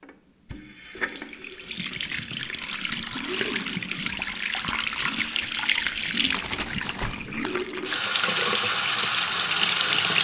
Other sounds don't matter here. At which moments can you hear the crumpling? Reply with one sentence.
You can hear the crumpling from 6.3 to 7.8 s.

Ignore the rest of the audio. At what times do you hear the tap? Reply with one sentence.
The tap can be heard from 0.0 to 10.2 s.